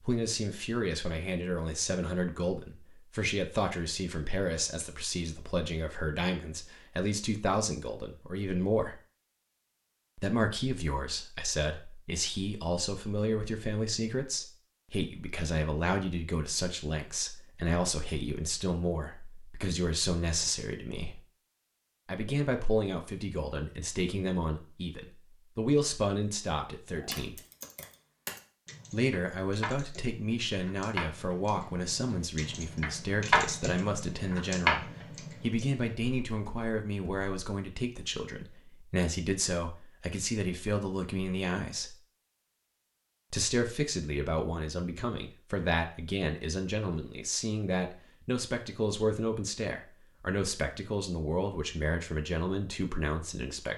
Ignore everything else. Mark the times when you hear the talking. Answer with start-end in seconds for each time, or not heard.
0.0-9.0, 10.2-21.2, 22.1-27.4, 28.9-42.0, 43.3-53.7.